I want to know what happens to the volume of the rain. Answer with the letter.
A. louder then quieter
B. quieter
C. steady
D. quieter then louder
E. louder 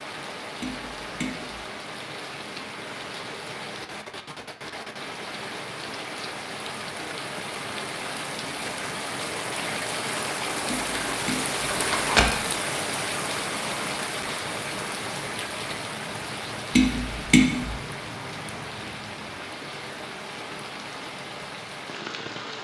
A.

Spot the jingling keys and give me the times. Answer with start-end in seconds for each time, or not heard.
11.7-12.3.